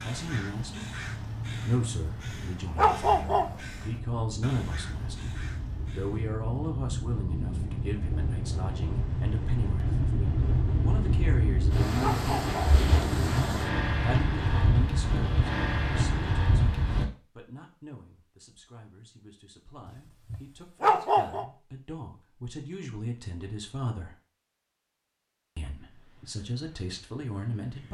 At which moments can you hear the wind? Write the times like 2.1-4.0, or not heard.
0.0-17.1.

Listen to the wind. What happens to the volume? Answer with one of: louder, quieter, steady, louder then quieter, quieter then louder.
louder.